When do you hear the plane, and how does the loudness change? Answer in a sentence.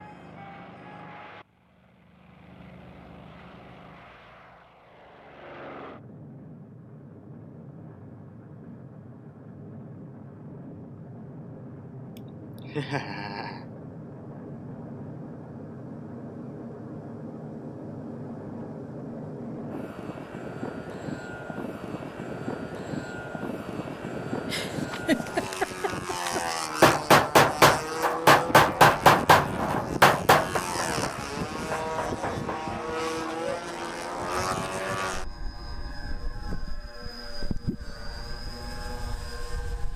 The plane can be heard from 0.0 to 39.9 s, getting louder.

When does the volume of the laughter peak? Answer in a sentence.
The volume of the laughter peaks at 25 seconds.